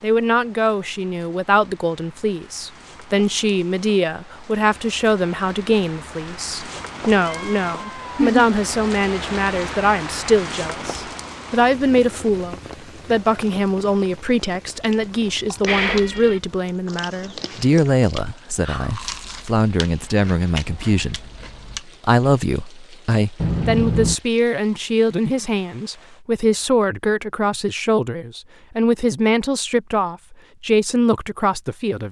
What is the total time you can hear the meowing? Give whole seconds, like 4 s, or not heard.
3 s.